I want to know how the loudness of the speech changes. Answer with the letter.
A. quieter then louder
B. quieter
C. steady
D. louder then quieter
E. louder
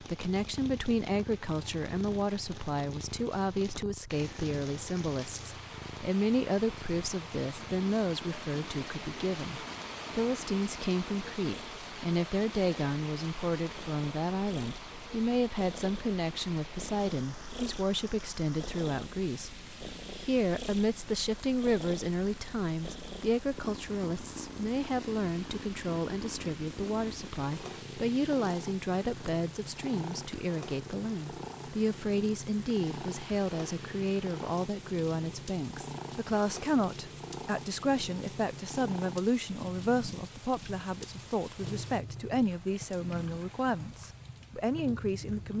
C.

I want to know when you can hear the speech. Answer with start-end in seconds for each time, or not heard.
0.0-45.5.